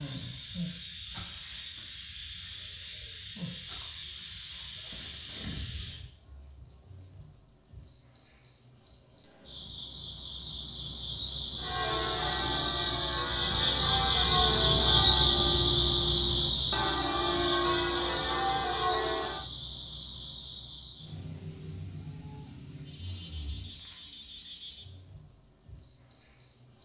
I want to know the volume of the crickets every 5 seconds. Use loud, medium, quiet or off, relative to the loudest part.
quiet, quiet, loud, loud, quiet, quiet.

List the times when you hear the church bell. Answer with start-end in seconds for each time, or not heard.
11.6-19.4.